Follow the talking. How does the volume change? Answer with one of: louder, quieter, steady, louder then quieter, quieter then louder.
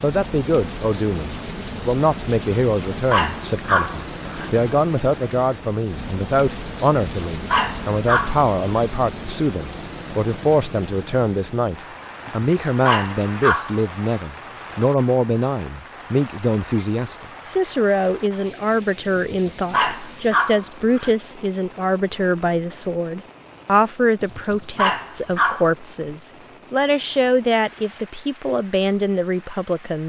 steady.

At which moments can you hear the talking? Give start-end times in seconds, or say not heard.
0.0-30.0.